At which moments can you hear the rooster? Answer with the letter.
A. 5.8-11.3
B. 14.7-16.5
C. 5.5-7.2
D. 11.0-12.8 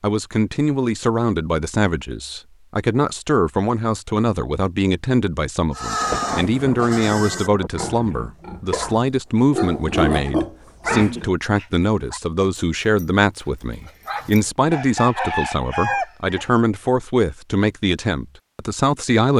B.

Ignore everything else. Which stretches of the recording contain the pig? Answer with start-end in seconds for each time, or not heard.
5.8-11.3.